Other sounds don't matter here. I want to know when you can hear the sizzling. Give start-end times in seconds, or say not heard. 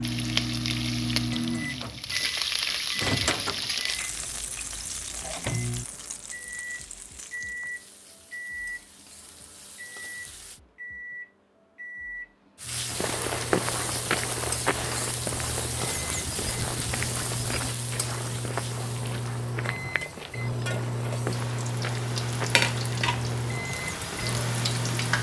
0.0-10.6, 12.6-25.1.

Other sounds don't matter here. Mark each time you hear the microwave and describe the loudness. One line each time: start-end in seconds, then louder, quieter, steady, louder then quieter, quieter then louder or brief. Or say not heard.
0.0-25.1 quieter then louder.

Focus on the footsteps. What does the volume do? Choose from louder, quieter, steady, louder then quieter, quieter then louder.
quieter.